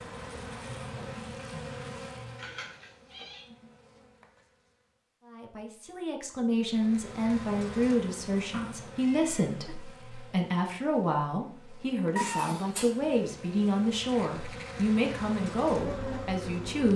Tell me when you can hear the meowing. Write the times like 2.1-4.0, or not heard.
2.4-3.5, 8.5-9.8, 12.2-12.9.